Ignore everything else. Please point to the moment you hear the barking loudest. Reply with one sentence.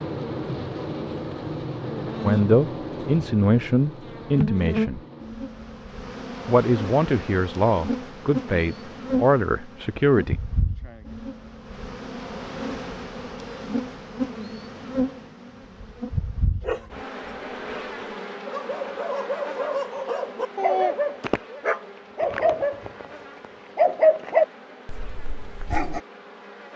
The loudest moment of the barking is at 24 seconds.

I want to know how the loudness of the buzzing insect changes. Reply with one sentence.
The volume of the buzzing insect goes down.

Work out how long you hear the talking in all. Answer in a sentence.
The talking can be heard for 7 seconds in total.